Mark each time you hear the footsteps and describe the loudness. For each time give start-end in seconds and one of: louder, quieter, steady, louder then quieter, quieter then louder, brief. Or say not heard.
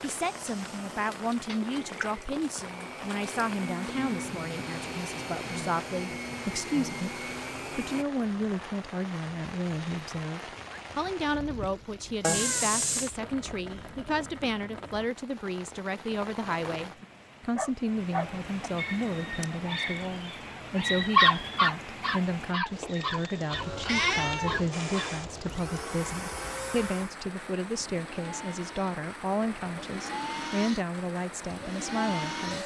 not heard.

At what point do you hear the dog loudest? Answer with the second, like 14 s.
21 s.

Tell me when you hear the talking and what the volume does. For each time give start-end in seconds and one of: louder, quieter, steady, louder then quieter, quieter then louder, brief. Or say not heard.
0.0-32.6 steady.